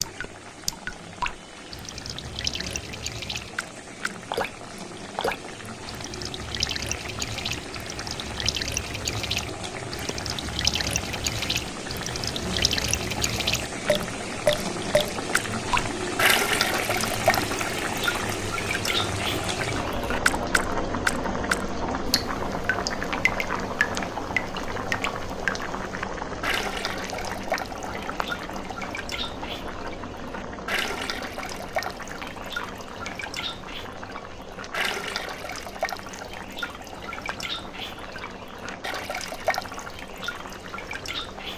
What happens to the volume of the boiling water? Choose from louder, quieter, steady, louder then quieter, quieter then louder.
louder then quieter.